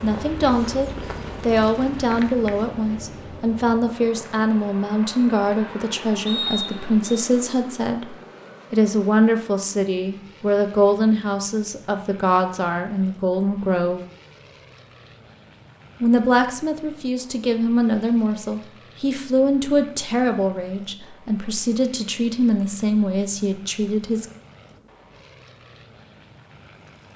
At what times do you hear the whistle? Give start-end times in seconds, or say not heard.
6.2-7.2.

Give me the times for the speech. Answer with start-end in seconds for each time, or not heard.
0.0-14.0, 16.0-24.2.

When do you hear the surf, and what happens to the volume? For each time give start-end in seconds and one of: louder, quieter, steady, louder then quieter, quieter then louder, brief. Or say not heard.
not heard.